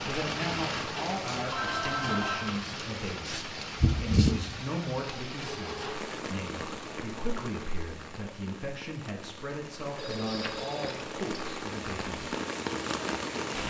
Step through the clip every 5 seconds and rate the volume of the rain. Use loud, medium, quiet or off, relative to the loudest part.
loud, medium, loud.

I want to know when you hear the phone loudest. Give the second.
2 s.